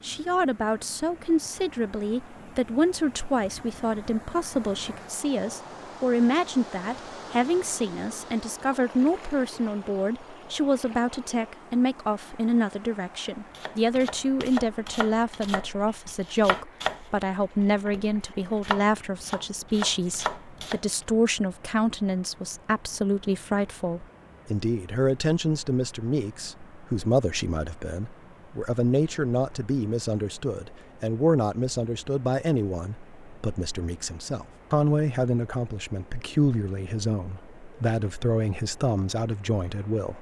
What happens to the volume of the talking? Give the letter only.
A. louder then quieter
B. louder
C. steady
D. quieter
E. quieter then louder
C.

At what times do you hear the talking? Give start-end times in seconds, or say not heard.
0.0-40.1.